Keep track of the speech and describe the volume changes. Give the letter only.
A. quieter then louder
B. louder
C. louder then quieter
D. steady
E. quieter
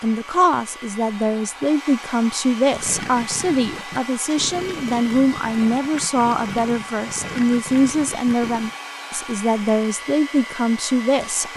D.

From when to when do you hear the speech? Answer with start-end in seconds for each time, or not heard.
0.0-11.5.